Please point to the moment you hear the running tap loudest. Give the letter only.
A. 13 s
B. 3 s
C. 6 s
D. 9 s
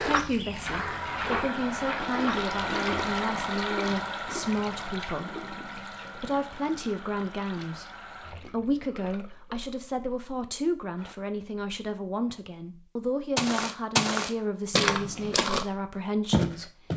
B.